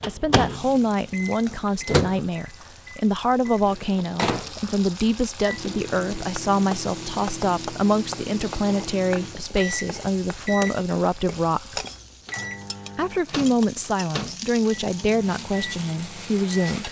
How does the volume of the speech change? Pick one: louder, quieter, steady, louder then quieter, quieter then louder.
steady.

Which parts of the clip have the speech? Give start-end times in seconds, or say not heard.
0.1-11.8, 12.9-16.8.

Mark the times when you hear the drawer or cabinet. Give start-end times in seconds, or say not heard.
not heard.